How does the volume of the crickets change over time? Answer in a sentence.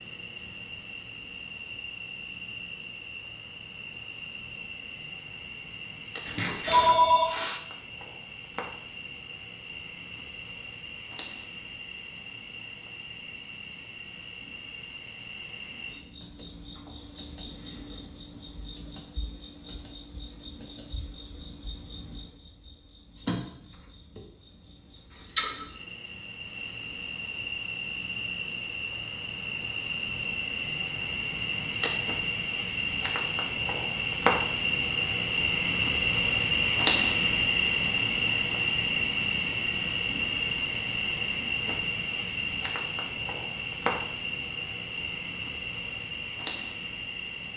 The volume of the crickets goes up.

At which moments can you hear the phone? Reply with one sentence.
You can hear the phone from 6.2 to 7.2 s.